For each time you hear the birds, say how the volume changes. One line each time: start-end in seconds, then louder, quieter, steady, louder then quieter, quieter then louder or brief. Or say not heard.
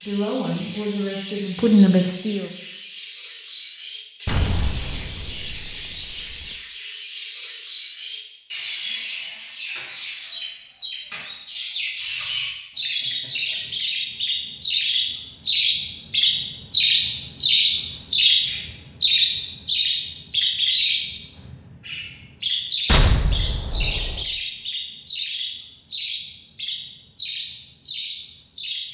0.0-28.8 louder then quieter.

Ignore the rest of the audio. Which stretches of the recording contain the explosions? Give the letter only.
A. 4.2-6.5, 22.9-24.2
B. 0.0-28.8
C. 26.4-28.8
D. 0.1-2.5
A.